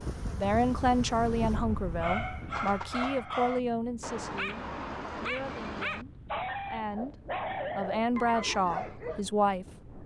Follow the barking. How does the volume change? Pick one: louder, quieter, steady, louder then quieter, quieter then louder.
steady.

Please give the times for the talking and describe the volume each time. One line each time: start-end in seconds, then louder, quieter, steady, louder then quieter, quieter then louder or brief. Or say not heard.
0.3-7.2 quieter
7.8-10.0 brief.